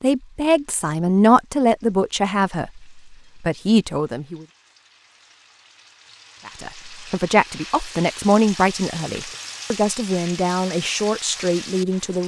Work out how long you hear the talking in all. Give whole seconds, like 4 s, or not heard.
10 s.